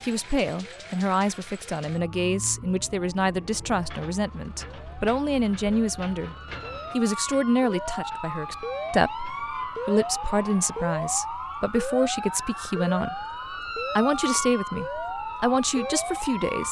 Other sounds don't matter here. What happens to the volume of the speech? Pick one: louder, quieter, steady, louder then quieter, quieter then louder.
steady.